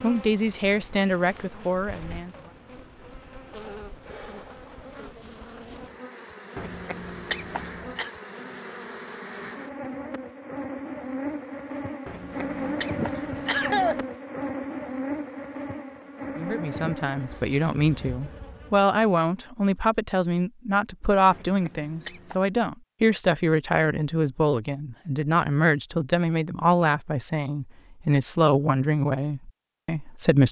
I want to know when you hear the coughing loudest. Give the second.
14 s.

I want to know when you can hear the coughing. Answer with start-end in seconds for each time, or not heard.
6.5-8.1, 12.1-14.1, 21.3-22.4.